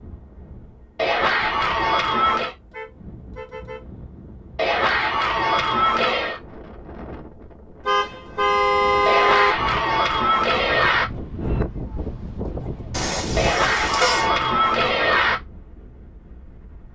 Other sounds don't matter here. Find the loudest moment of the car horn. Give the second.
9 s.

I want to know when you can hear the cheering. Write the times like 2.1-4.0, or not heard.
0.9-2.5, 4.5-6.4, 9.1-11.1, 13.3-15.4.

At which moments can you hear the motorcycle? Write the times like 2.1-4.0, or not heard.
not heard.